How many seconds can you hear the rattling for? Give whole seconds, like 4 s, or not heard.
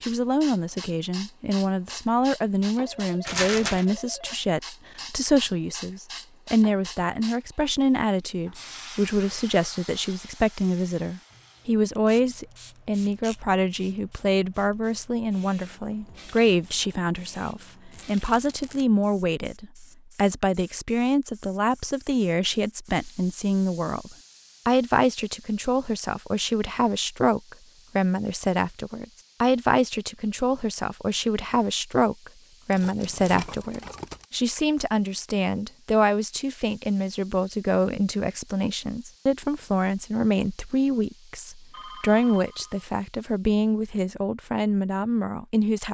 3 s.